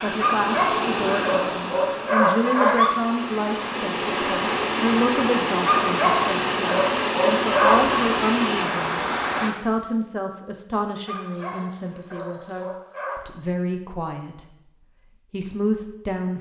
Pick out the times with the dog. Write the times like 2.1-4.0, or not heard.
0.2-3.0, 5.7-8.1, 11.1-13.2.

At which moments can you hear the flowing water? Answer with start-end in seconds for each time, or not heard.
0.0-9.5.